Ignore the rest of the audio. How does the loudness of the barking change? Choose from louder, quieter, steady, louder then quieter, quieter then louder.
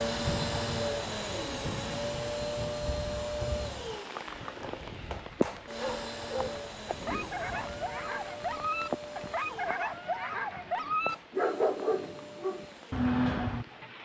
louder.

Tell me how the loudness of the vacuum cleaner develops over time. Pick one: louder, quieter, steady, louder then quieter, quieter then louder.
quieter.